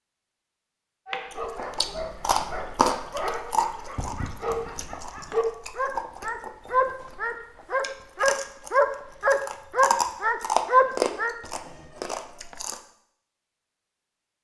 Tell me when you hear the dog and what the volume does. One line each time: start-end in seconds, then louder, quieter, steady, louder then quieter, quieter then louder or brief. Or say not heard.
1.1-11.3 louder.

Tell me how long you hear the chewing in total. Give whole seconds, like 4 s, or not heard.
11 s.